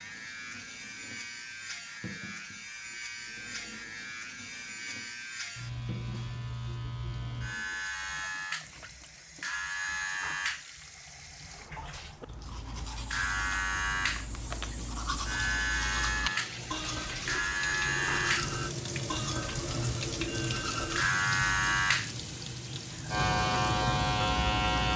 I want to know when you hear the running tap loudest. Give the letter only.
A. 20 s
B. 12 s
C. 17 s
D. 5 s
A.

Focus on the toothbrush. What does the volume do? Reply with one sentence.
The loudness of the toothbrush goes up.